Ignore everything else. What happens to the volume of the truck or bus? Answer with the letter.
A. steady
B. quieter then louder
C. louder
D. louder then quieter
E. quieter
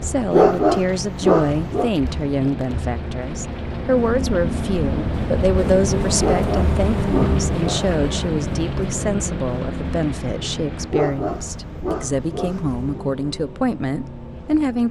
D.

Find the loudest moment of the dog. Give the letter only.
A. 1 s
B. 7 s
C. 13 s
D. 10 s
A.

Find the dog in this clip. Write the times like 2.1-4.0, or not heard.
0.3-1.9, 6.2-7.8, 10.9-13.1.